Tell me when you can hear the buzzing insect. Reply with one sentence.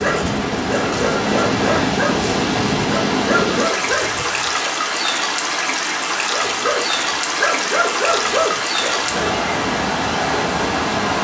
You can't hear the buzzing insect here.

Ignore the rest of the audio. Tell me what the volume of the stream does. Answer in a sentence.
The loudness of the stream stays about the same.